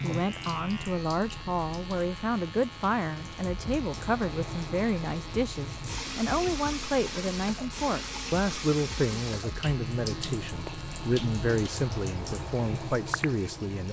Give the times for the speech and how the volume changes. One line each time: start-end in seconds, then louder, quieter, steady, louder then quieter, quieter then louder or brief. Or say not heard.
0.0-13.8 steady.